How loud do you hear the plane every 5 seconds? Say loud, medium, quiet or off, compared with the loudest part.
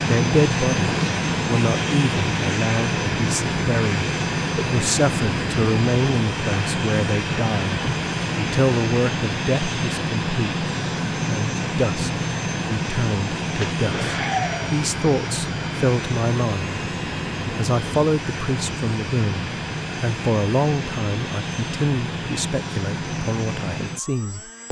loud, loud, loud, medium, medium.